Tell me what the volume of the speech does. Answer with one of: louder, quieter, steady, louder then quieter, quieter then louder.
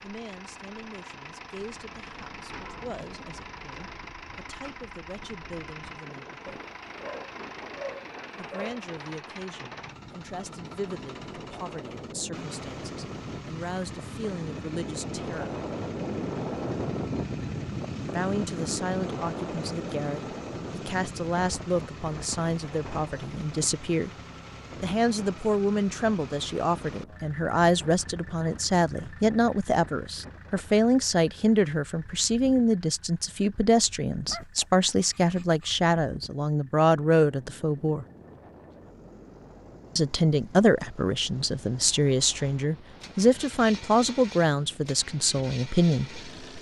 louder.